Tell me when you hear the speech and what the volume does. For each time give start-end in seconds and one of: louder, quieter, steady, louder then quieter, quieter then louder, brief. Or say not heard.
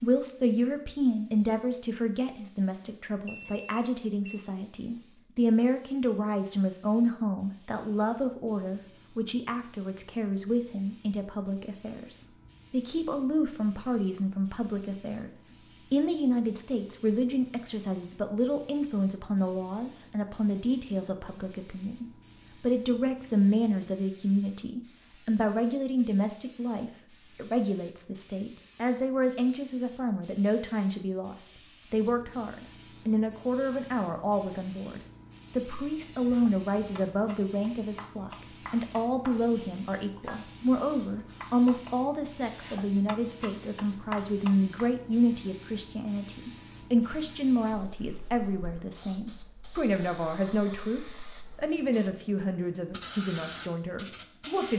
0.0-54.7 steady.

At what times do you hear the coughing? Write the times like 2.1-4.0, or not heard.
not heard.